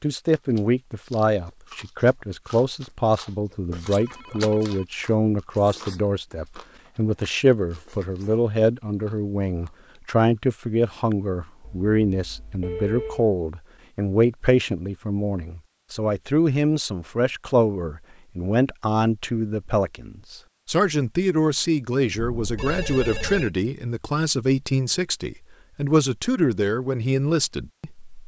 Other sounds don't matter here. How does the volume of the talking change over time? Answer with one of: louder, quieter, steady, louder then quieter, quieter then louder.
steady.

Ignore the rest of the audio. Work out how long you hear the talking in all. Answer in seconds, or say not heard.
28 s.